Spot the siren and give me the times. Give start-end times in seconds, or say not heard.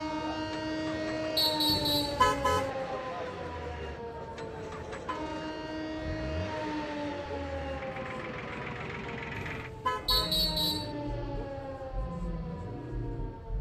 0.0-13.5.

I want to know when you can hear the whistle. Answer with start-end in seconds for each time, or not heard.
1.4-2.2, 10.1-10.9.